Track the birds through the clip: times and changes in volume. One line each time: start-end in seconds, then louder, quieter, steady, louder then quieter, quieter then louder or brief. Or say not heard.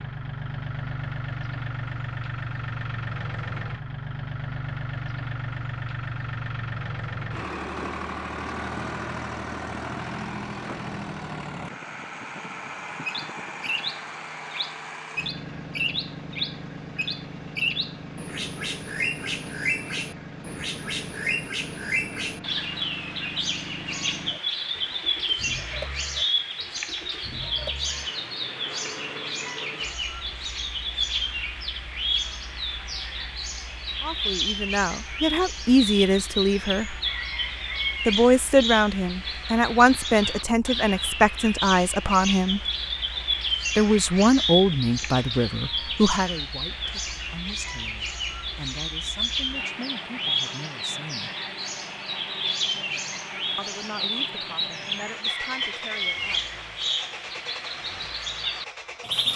13.1-59.3 steady.